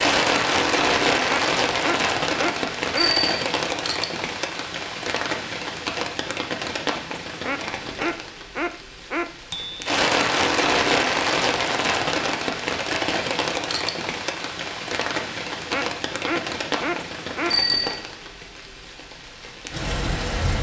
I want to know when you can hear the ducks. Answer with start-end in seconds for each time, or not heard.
1.2-3.1, 7.4-9.2, 15.7-17.6.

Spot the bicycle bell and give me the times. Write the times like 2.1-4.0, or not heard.
3.0-3.5, 9.5-9.9, 17.5-18.0.